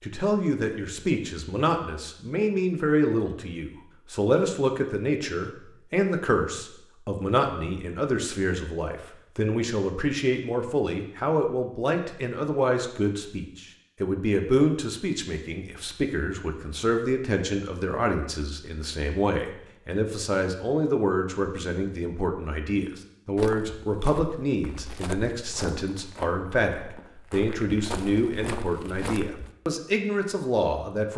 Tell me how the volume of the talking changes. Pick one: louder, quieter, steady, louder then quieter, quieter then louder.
steady.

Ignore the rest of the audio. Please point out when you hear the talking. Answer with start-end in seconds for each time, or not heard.
0.0-31.1.